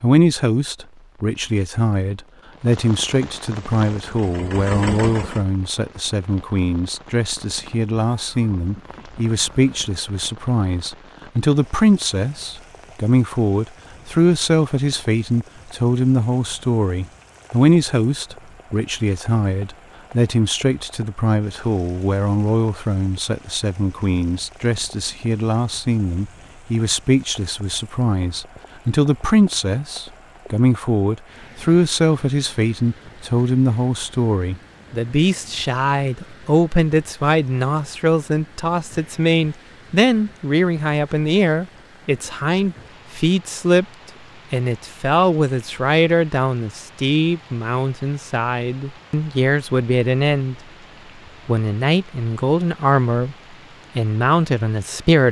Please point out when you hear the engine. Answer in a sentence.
You can hear the engine from 3.5 to 5.5 s.